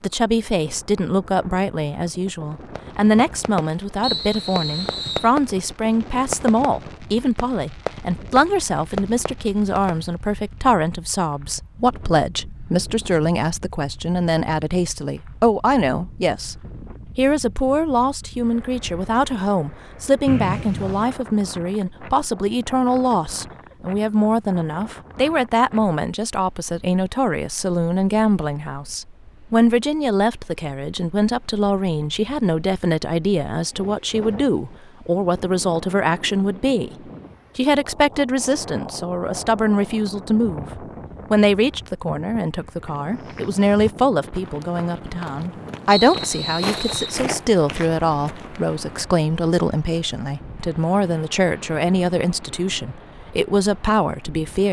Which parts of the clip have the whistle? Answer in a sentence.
You can hear the whistle from 4.0 to 5.3 s, from 20.2 to 21.1 s and from 45.9 to 47.2 s.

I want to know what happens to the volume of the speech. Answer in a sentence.
The loudness of the speech stays about the same.